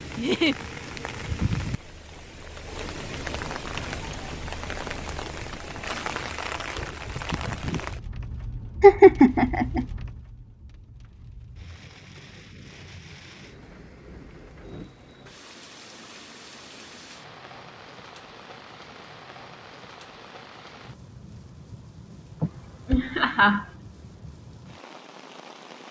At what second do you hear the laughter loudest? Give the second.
9 s.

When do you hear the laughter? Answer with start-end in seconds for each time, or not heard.
0.1-0.6, 8.8-9.8, 22.4-23.6.